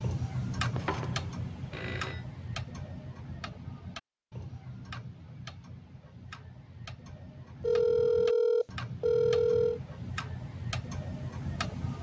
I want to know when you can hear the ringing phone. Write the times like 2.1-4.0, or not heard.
0.7-2.2, 7.6-9.8.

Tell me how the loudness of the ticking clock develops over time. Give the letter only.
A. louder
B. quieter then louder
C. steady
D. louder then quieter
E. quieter
B.